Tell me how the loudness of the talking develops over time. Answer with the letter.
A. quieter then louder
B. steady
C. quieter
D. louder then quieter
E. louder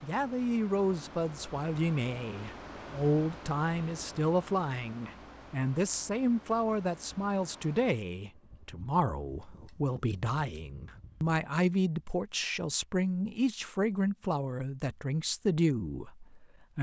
B.